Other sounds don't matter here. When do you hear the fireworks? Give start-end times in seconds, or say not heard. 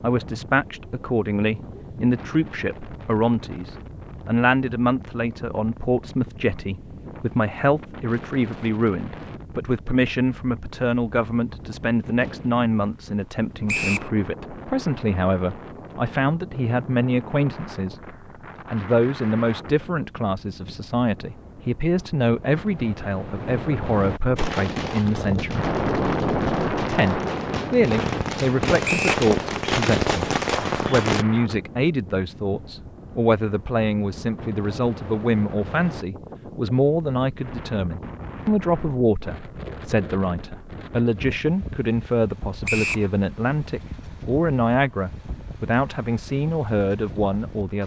24.4-31.2.